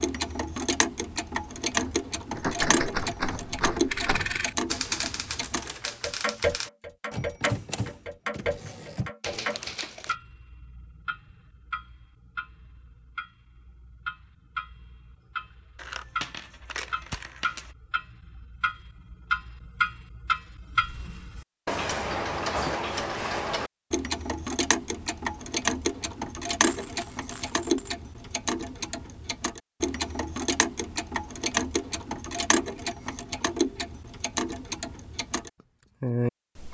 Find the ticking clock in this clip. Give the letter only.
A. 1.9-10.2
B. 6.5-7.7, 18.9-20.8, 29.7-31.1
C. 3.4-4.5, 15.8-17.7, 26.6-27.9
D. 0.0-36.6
D.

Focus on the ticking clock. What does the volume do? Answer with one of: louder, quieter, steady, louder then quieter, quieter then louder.
quieter then louder.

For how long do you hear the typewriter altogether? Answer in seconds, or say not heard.
8 s.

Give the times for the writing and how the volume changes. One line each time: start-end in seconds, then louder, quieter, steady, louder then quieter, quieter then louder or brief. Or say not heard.
not heard.